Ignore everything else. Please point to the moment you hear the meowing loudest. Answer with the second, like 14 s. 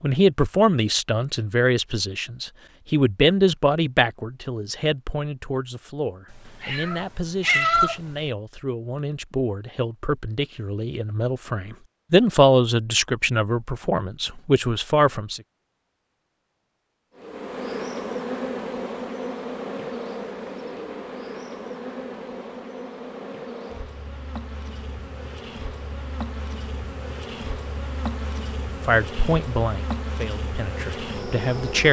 8 s.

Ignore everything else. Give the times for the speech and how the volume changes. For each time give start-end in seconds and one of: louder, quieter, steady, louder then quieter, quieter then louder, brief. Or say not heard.
0.0-15.4 quieter then louder
28.9-31.8 brief.